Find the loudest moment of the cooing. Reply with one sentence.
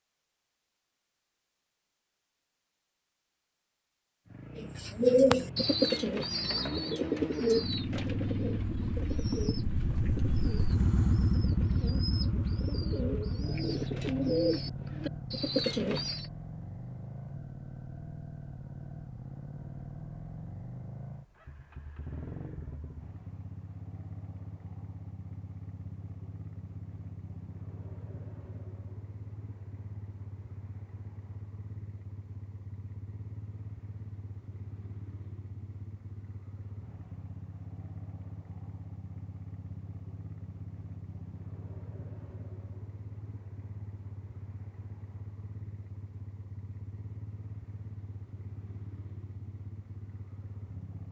The loudest moment of the cooing is at 5 seconds.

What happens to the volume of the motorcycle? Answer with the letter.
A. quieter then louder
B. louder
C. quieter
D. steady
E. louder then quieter
C.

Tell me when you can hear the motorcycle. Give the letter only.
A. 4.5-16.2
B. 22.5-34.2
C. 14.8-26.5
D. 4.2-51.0
D.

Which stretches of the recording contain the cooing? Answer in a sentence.
The cooing can be heard from 4.5 to 16.2 s.